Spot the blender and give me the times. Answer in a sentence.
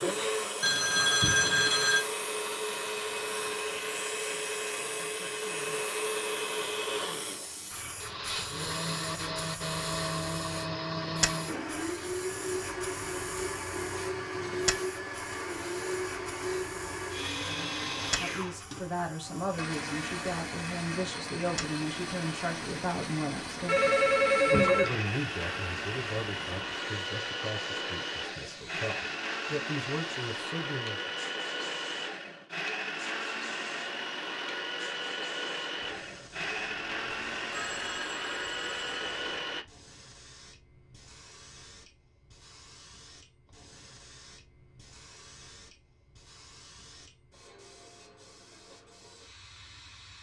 You can hear the blender from 0.0 to 39.6 s.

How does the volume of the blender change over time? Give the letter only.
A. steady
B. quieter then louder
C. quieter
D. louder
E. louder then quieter
A.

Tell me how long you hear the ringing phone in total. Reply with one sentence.
The ringing phone can be heard for 4 seconds in total.